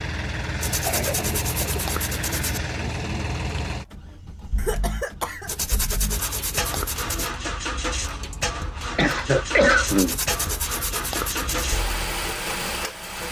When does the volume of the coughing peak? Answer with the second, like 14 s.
10 s.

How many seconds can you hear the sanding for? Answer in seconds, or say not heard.
6 s.